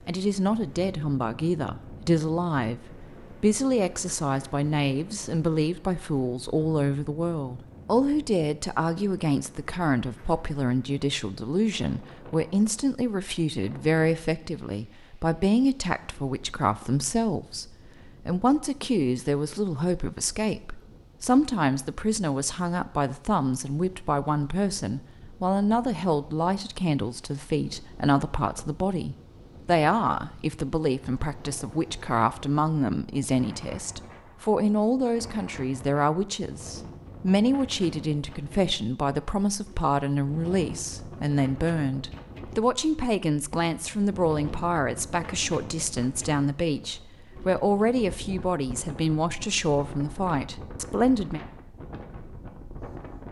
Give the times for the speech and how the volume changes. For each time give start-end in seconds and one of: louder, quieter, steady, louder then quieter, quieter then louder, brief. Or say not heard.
0.1-51.4 steady.